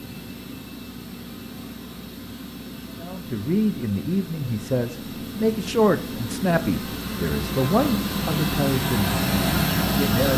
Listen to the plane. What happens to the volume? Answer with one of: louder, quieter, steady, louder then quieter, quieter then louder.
louder.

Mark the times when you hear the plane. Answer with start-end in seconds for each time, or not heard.
0.0-10.3.